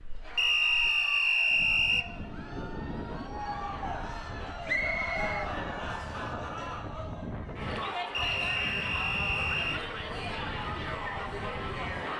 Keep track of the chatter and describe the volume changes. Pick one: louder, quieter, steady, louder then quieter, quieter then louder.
louder.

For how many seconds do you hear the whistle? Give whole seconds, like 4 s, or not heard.
5 s.